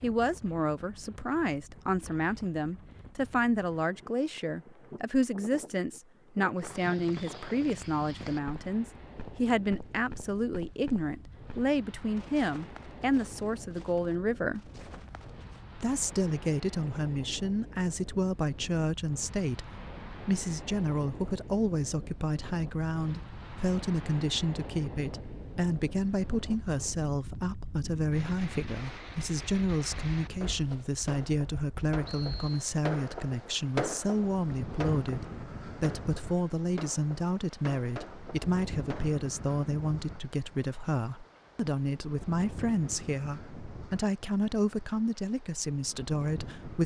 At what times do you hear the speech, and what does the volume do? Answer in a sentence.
The speech can be heard from 0.0 to 14.7 s, at a steady volume; and from 15.8 to 46.8 s, at a steady volume.